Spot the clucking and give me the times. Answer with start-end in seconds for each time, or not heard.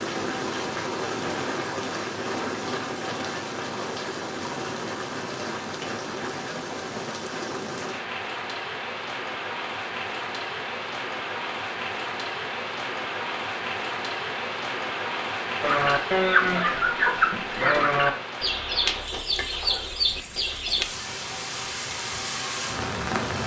15.6-20.9.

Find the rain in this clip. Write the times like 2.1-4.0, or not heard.
0.0-23.4.